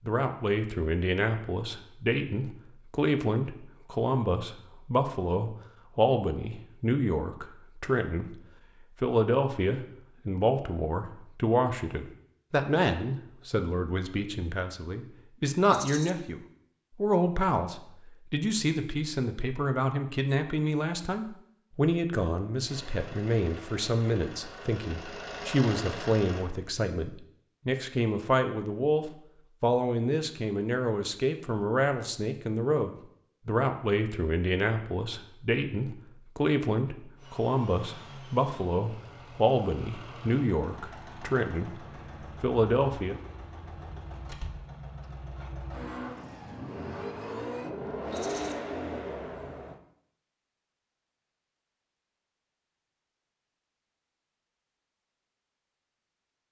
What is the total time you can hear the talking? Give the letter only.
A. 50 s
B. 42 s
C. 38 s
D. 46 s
B.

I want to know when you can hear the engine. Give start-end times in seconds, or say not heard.
22.6-26.5, 37.1-49.8.